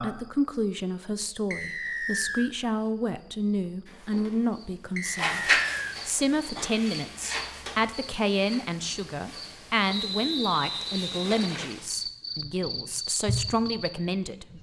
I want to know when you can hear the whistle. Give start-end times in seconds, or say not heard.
1.5-2.5, 5.0-6.0, 9.8-11.7.